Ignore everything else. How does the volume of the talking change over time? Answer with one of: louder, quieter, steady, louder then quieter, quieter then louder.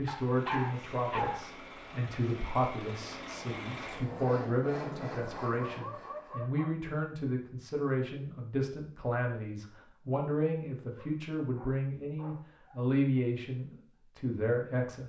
steady.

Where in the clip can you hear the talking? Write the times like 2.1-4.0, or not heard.
0.0-15.0.